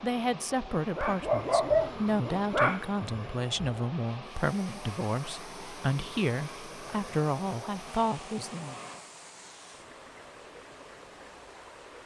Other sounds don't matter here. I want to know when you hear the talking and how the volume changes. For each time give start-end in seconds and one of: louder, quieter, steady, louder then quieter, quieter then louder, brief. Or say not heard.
0.0-8.8 steady.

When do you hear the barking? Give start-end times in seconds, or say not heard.
0.9-3.7.